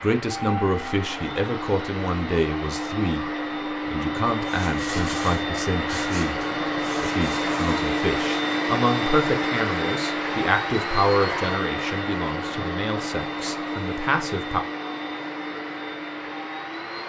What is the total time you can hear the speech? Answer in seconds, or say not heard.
14 s.